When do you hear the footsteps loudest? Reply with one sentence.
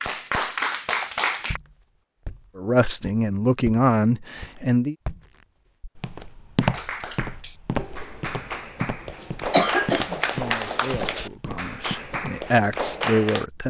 The volume of the footsteps peaks at 7 seconds.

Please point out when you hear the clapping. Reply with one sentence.
You can hear the clapping from 0.0 to 1.6 s and from 6.6 to 13.4 s.